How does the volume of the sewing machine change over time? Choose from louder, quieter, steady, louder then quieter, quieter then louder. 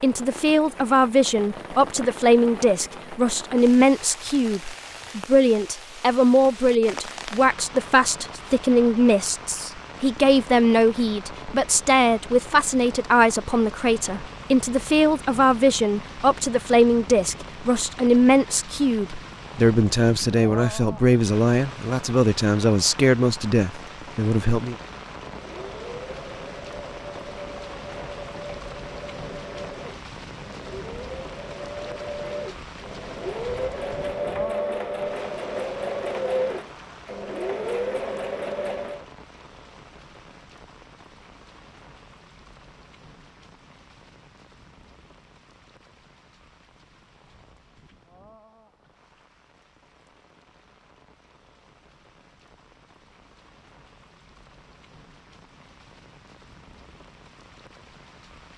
louder.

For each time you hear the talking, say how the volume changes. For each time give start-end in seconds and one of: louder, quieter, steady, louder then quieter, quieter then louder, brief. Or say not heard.
0.0-24.8 steady.